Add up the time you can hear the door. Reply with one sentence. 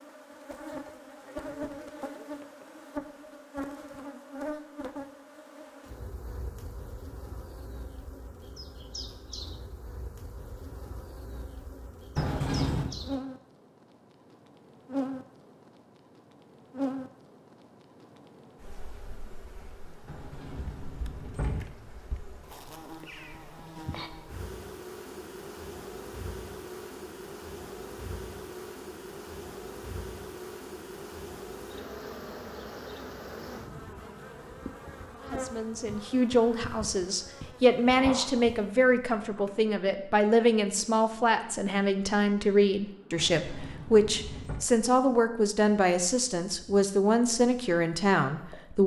The door can be heard for 4 seconds in total.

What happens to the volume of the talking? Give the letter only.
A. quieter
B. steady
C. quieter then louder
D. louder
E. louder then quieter
B.